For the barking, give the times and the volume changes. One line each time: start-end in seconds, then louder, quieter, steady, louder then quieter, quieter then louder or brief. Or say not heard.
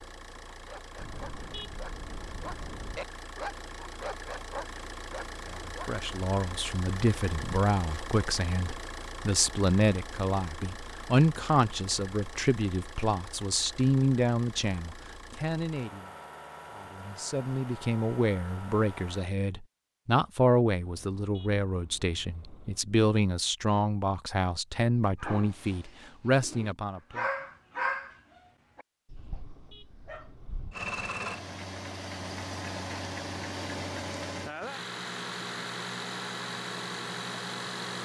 0.5-5.9 louder then quieter
25.2-30.8 louder then quieter.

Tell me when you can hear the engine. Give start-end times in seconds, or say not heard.
0.0-19.2, 30.7-38.0.